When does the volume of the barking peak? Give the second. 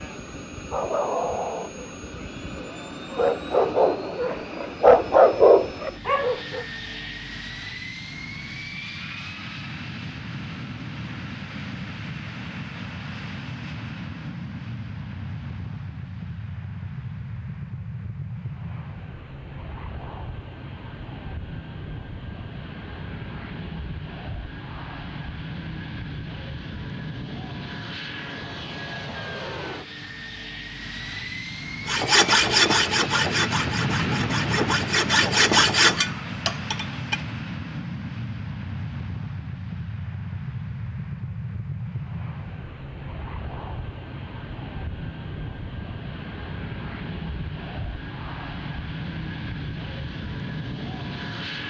5 s.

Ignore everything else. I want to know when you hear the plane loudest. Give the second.
34 s.